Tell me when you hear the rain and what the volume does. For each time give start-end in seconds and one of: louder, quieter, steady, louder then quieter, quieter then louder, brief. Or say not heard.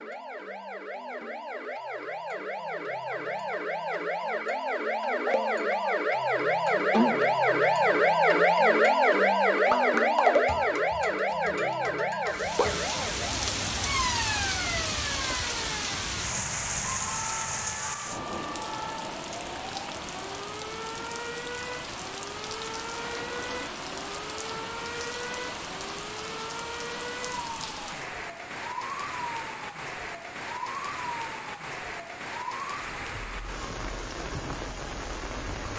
12.2-35.7 quieter.